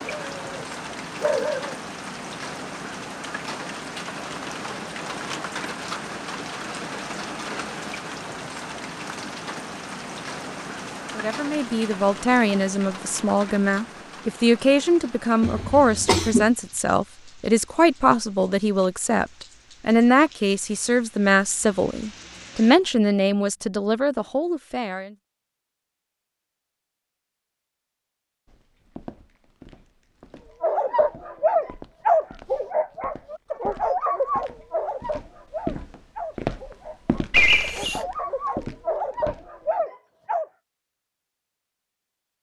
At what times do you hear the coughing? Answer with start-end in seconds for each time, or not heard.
15.4-16.5, 37.3-38.0.